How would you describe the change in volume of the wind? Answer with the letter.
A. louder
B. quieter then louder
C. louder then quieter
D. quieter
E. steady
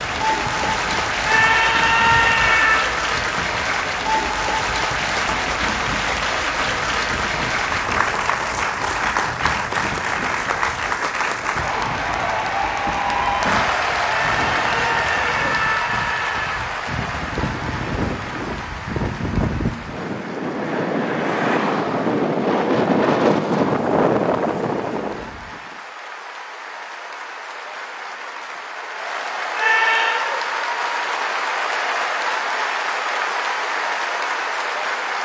A.